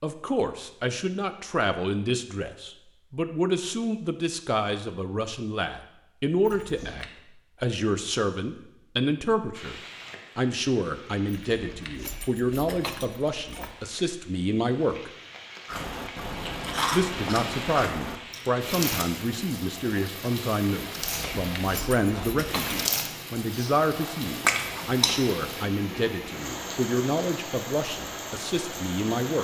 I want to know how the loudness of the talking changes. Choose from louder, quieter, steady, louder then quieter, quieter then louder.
steady.